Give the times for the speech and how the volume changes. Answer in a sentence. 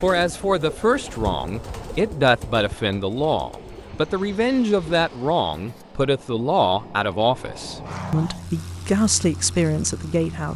The speech can be heard from 0.0 to 10.5 s, at a steady volume.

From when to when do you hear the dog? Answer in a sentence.
The dog can't be heard in this clip.